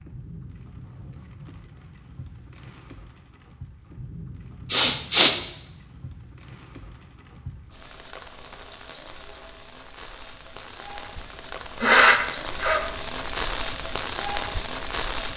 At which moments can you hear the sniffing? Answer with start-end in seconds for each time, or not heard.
4.7-5.3, 11.8-12.8.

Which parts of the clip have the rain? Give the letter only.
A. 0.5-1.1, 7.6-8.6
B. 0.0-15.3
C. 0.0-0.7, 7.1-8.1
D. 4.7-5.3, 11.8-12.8
B.